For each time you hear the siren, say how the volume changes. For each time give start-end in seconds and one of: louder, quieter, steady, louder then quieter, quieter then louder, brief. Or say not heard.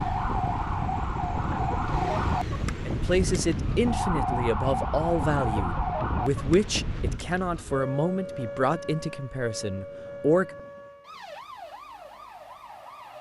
0.0-13.1 quieter.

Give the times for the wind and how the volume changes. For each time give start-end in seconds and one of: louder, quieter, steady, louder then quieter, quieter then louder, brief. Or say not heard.
0.0-7.2 steady.